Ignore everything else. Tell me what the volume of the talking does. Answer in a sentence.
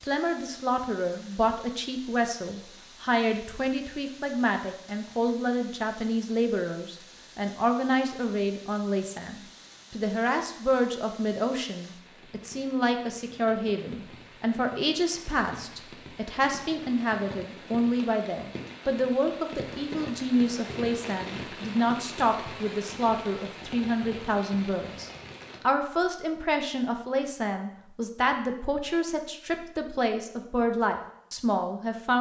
The loudness of the talking stays about the same.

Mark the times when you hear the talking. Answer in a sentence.
The talking can be heard from 0.0 to 32.1 s.